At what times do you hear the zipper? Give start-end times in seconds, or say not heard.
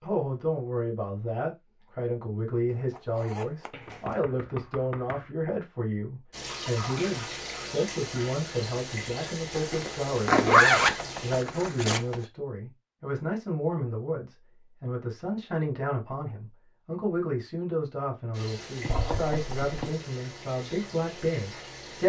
2.7-4.2, 9.6-12.0, 18.9-19.7.